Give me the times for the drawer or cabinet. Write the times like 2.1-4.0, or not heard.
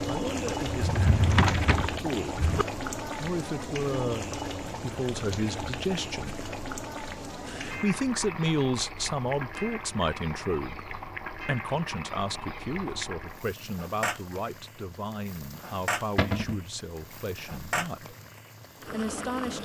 0.7-2.6, 16.1-16.6.